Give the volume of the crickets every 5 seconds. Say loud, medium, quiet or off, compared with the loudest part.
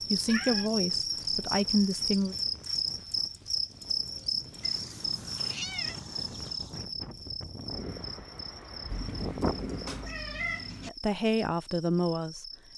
loud, medium, quiet.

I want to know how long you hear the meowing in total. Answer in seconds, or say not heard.
5 s.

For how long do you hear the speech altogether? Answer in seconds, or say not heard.
4 s.